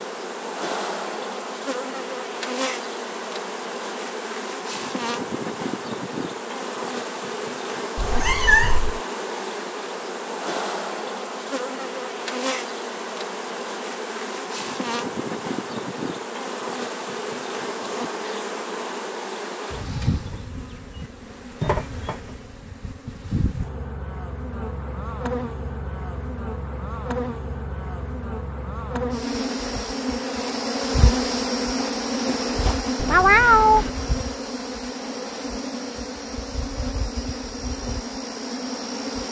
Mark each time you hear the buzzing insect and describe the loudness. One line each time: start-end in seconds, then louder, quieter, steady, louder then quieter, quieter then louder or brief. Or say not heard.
0.0-39.2 steady.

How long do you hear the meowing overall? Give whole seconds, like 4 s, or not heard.
2 s.